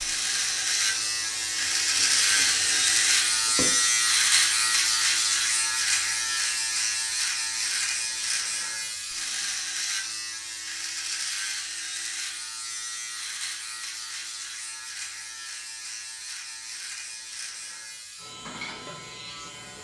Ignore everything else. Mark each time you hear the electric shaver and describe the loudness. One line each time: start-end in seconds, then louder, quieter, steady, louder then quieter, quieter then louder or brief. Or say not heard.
0.0-19.7 quieter.